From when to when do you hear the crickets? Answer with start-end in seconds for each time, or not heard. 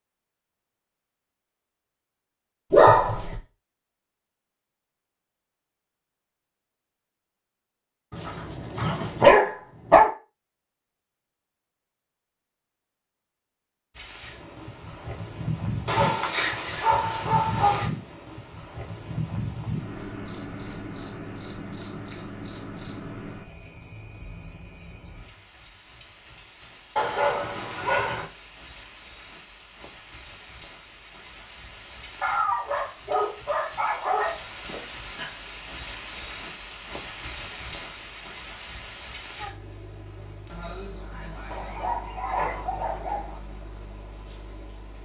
13.9-45.0.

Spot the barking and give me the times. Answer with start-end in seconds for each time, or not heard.
2.7-3.4, 8.1-10.1, 15.8-17.9, 26.9-28.2, 32.2-34.4, 41.5-43.4.